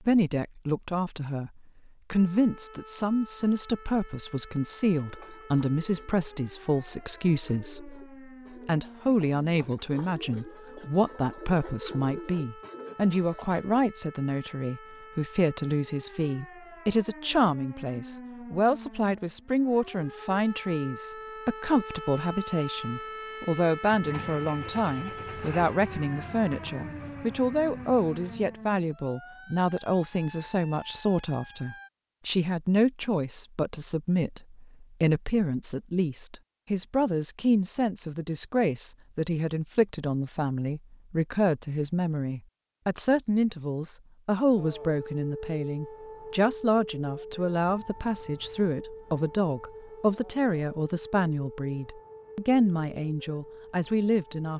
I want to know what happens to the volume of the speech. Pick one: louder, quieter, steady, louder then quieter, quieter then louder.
steady.